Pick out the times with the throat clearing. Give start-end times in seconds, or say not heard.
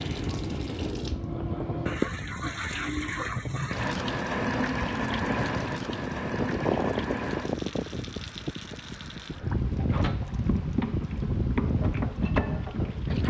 not heard.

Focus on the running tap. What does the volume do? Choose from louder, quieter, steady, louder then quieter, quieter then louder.
quieter then louder.